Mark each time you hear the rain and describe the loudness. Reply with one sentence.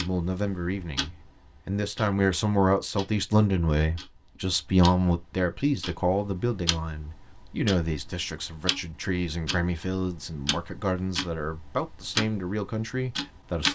The rain can't be heard in this clip.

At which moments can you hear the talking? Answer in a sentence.
You can hear the talking from 0.0 to 13.6 s.